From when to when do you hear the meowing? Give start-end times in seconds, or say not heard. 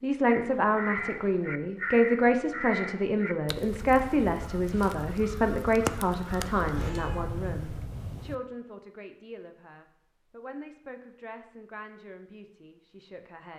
6.6-8.3.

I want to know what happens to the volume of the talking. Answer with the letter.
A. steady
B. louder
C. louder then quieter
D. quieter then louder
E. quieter
E.